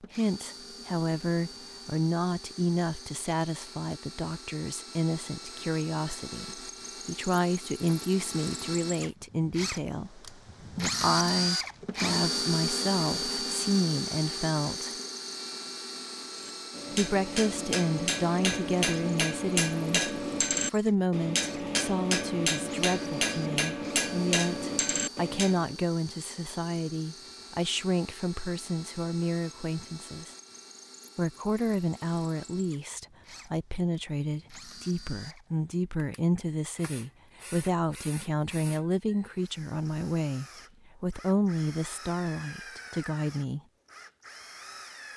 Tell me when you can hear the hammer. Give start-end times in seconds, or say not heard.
16.4-25.8.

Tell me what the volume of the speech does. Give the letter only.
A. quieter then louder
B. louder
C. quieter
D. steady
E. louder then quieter
D.